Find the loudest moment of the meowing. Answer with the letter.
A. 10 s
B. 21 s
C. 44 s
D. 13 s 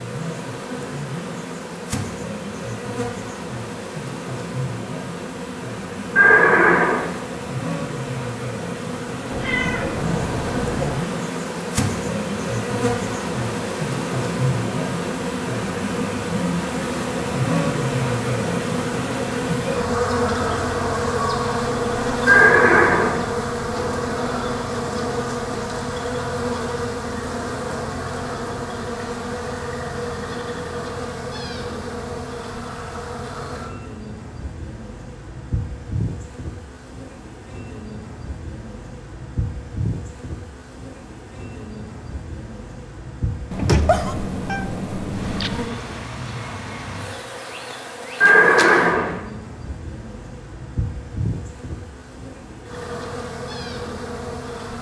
C.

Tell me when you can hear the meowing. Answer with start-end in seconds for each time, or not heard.
9.3-11.1, 43.5-45.7.